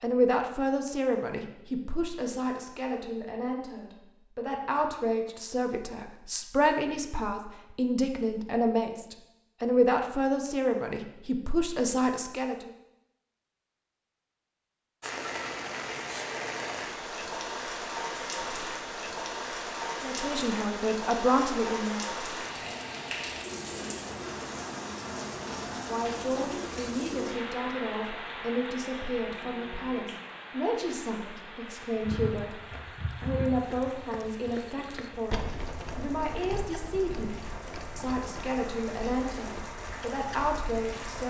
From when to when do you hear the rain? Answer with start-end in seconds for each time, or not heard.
15.0-41.2.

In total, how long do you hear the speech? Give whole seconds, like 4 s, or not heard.
31 s.